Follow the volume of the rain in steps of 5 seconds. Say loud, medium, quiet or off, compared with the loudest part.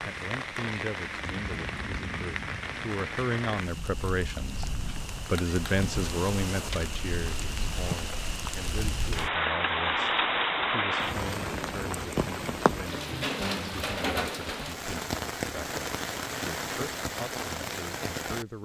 medium, loud, loud, loud.